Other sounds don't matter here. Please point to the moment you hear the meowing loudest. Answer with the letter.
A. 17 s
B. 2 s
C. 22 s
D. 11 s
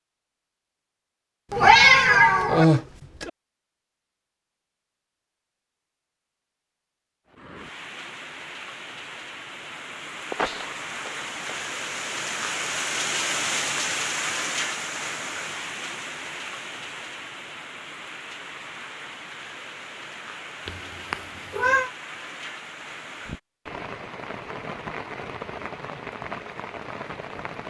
B.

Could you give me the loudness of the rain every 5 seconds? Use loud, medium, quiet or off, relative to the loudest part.
off, medium, loud, medium, medium, medium.